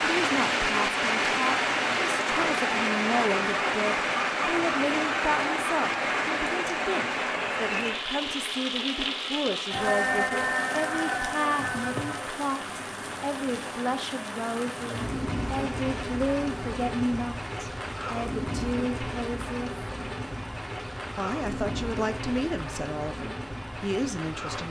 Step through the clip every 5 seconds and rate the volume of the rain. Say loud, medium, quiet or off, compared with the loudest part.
loud, loud, medium, medium, medium.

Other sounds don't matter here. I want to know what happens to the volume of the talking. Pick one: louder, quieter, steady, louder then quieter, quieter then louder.
steady.